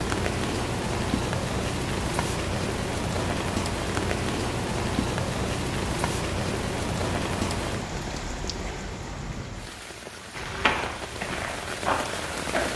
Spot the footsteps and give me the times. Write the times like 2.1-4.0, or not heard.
10.3-12.7.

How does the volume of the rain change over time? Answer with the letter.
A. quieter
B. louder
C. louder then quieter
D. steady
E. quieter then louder
A.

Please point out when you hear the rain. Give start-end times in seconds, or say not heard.
0.0-12.7.